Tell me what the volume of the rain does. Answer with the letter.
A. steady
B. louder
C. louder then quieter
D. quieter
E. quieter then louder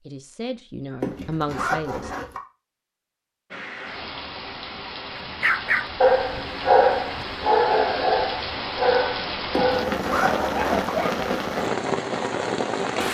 B.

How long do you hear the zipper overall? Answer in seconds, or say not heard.
3 s.